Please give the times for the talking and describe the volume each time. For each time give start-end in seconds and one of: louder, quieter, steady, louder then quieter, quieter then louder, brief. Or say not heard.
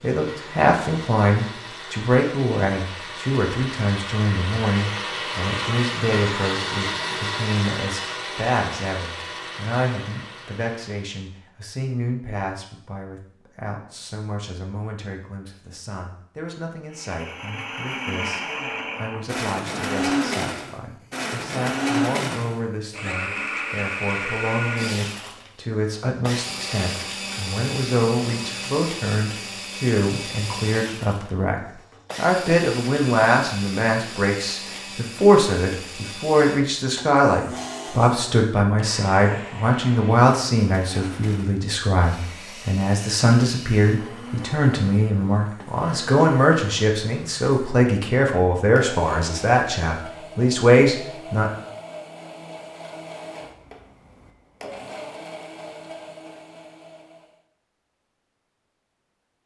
0.0-51.5 quieter then louder.